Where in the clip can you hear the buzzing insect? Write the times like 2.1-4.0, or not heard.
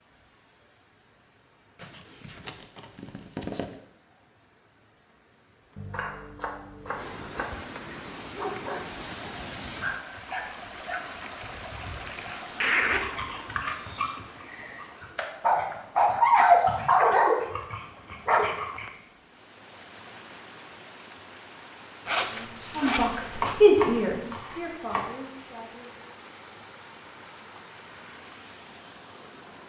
not heard.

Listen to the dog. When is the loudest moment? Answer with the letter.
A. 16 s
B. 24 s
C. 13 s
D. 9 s
A.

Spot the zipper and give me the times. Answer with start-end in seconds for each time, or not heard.
1.8-3.8, 12.0-13.4, 22.1-23.6.